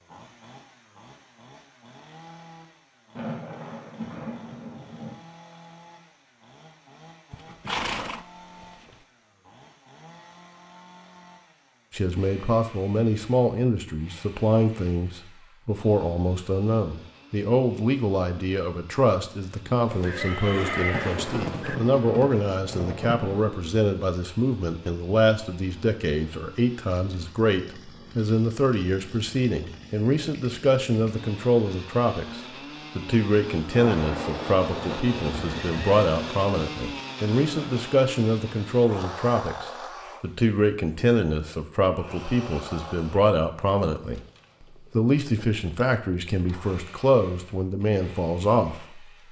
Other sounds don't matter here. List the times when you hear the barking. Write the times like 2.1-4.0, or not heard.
not heard.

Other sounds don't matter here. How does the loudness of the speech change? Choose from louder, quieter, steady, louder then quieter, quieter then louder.
steady.